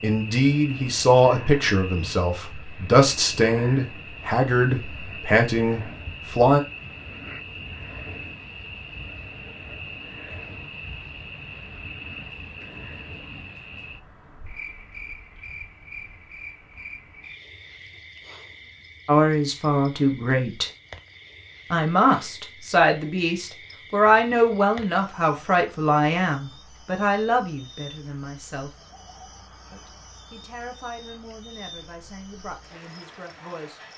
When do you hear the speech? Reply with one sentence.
The speech can be heard from 0.0 to 6.6 s, from 19.1 to 20.7 s, from 21.7 to 28.7 s and from 29.7 to 33.8 s.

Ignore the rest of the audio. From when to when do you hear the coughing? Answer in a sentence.
The coughing can't be heard in this clip.